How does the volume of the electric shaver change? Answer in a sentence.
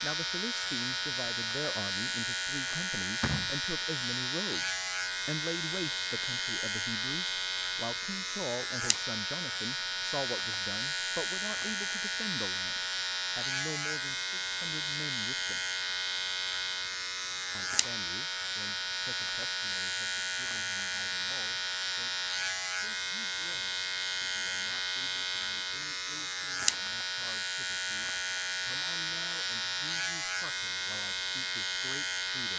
The loudness of the electric shaver stays about the same.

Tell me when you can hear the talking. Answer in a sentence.
You can hear the talking from 0.0 to 15.7 s and from 17.6 to 32.5 s.